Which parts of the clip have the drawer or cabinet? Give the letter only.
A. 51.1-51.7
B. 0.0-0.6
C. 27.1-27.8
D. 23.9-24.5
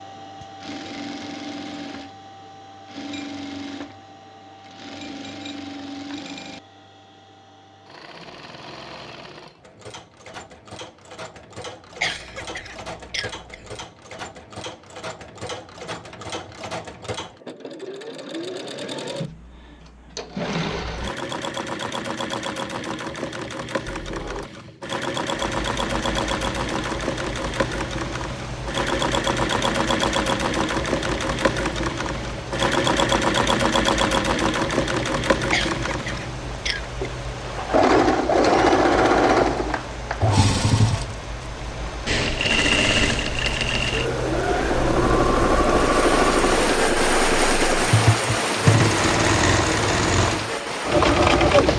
D.